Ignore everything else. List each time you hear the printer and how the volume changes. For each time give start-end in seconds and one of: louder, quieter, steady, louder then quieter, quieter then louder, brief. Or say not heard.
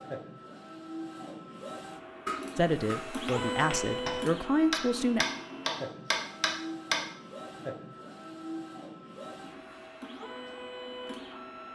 0.0-11.6 louder then quieter.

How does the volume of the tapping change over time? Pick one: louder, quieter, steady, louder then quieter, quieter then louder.
louder.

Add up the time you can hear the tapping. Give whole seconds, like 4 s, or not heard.
5 s.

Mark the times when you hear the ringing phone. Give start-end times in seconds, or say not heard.
not heard.